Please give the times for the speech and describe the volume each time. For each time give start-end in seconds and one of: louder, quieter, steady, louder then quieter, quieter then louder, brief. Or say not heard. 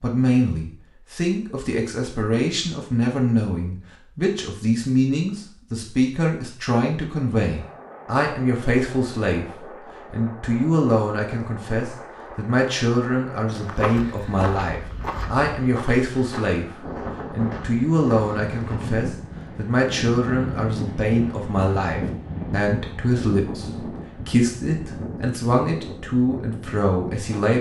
0.0-27.5 steady.